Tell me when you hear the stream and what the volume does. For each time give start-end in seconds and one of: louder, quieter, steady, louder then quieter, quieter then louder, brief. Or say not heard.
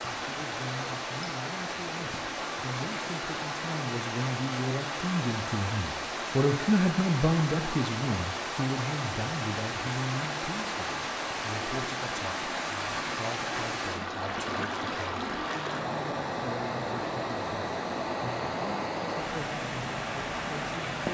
0.0-21.0 steady.